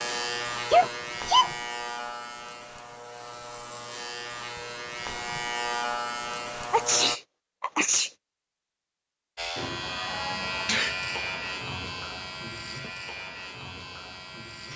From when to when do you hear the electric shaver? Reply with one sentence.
The electric shaver can be heard from 0.0 to 7.2 s and from 9.3 to 14.7 s.